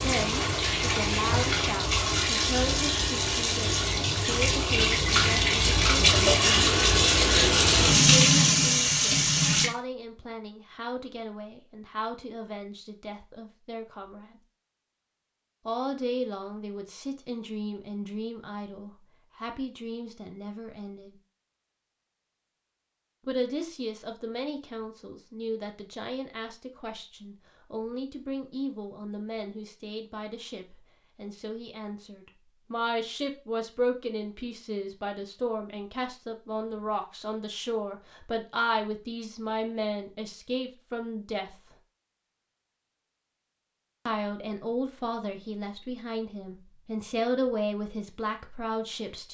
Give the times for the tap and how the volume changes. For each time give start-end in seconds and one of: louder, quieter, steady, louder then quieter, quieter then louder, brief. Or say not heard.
0.0-9.7 louder.